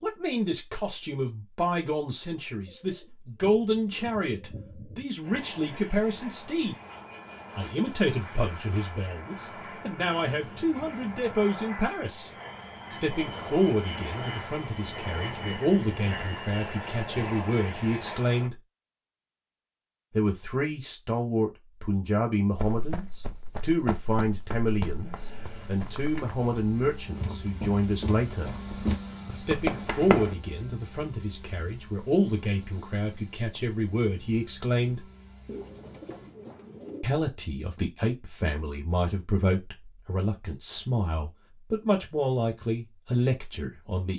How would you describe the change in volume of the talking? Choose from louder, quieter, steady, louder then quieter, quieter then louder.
steady.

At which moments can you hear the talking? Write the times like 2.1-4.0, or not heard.
0.0-6.8, 7.5-12.3, 12.9-18.6, 20.1-28.5, 29.4-35.0, 37.0-44.1.